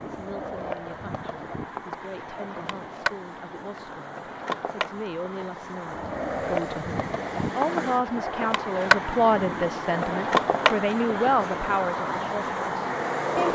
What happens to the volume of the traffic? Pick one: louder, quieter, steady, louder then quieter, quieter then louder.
louder.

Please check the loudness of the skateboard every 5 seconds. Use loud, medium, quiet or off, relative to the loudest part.
medium, loud, loud.